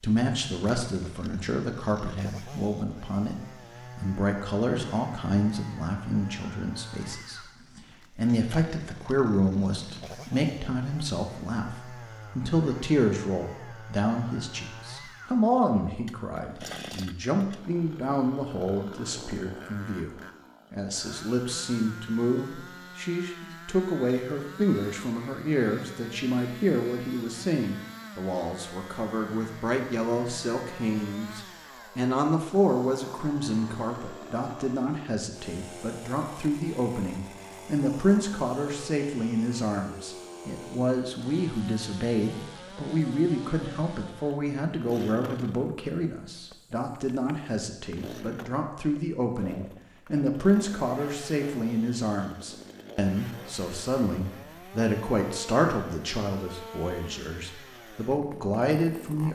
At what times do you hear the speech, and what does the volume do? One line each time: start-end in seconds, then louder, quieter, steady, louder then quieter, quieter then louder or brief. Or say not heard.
0.0-59.3 steady.